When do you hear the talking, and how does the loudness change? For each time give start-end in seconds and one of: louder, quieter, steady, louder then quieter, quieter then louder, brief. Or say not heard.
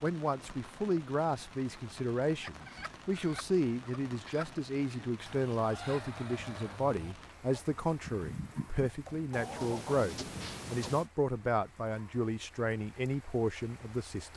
0.0-14.3 steady.